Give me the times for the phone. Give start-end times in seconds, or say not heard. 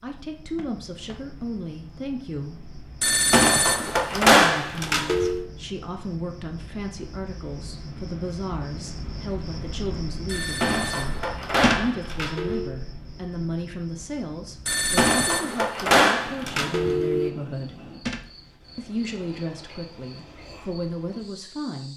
3.0-5.5, 10.2-12.8, 14.7-17.3.